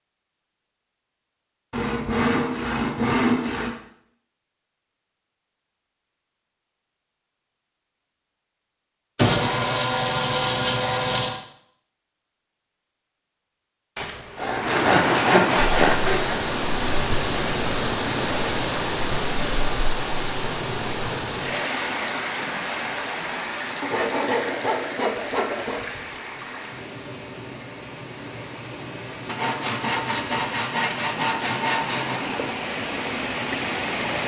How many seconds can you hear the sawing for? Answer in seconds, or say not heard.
12 s.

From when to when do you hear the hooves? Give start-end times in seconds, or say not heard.
not heard.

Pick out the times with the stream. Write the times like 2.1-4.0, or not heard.
14.5-34.2.